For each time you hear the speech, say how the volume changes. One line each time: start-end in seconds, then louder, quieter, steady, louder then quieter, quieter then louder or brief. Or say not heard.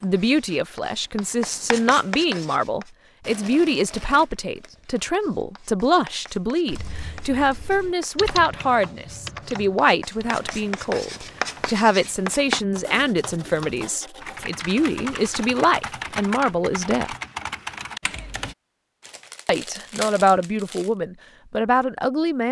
0.0-17.1 steady
19.4-22.4 brief.